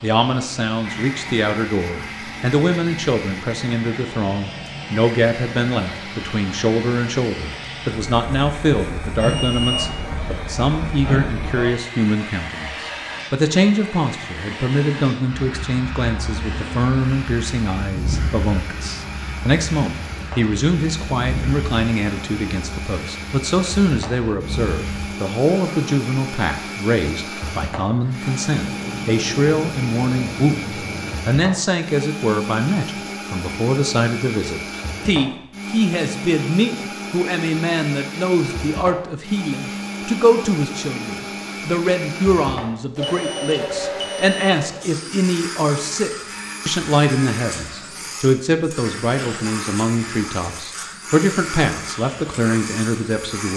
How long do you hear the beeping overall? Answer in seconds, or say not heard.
2 s.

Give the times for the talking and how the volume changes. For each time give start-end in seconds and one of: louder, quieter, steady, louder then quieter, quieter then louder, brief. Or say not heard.
0.0-53.5 steady.